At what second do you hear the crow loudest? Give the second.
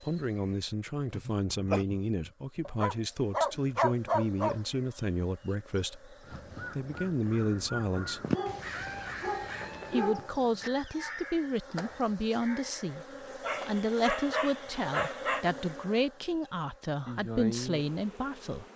8 s.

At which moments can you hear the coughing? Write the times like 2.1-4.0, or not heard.
1.1-1.9.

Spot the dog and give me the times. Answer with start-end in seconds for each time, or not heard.
2.6-4.6, 8.3-10.7, 13.4-15.4.